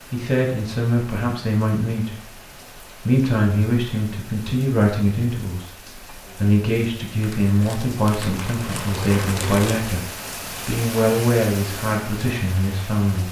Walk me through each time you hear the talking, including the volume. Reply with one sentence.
You can hear the talking briefly from 0.1 to 2.3 s; and from 3.0 to 13.2 s, at a steady volume.